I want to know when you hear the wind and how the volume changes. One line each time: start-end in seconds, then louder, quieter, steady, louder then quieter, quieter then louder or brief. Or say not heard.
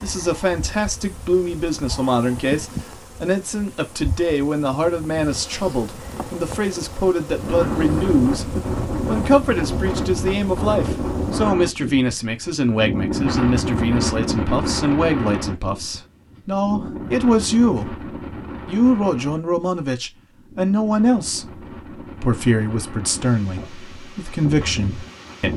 7.3-25.5 quieter.